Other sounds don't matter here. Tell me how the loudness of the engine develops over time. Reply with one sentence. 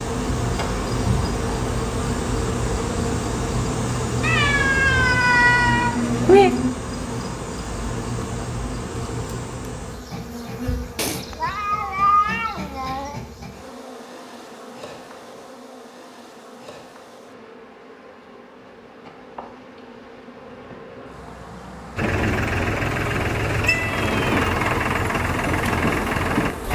The loudness of the engine stays about the same.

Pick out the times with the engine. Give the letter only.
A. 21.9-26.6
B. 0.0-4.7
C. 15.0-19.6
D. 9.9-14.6
A.